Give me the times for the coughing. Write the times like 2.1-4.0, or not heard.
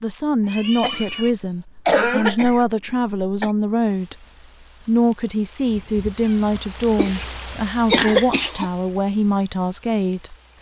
0.8-3.5, 7.0-8.7.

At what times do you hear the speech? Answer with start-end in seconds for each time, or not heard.
0.0-4.2, 4.8-10.5.